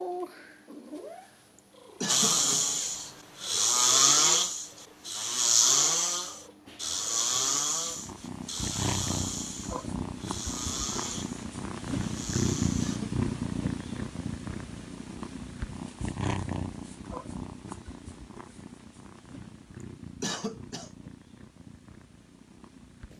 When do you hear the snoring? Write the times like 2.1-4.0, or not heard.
2.0-13.0.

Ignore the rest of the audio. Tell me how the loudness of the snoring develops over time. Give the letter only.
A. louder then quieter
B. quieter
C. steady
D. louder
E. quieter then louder
B.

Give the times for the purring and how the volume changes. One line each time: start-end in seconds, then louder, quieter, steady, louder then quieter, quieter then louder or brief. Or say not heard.
0.0-23.1 louder then quieter.